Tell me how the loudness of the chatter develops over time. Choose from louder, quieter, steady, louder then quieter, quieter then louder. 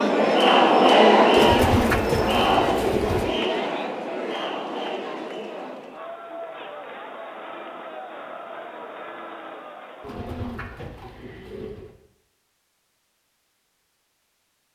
quieter.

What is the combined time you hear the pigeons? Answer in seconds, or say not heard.
4 s.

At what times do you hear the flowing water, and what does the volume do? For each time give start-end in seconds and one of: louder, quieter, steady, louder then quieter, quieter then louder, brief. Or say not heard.
not heard.